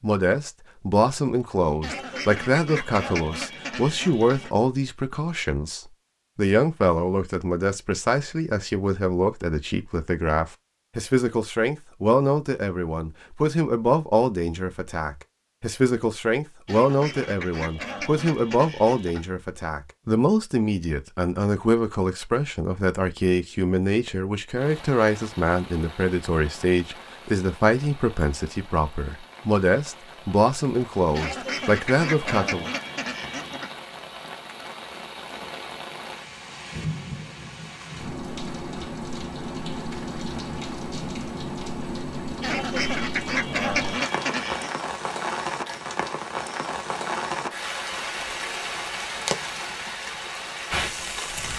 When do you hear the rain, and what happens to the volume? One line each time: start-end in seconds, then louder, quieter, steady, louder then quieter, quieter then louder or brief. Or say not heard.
24.6-51.5 louder.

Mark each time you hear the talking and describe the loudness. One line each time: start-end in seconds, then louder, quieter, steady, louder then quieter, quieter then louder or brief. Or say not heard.
0.0-32.7 steady.